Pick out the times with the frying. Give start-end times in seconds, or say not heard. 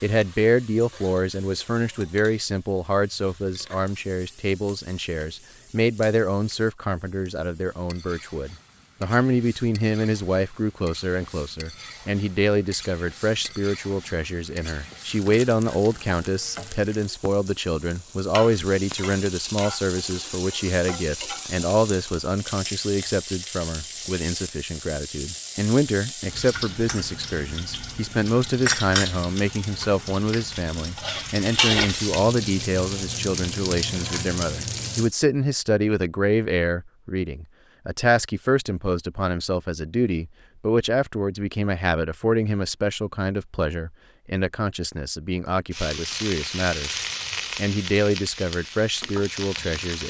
0.0-35.1, 45.7-50.0.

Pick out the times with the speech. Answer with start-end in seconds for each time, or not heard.
0.0-50.0.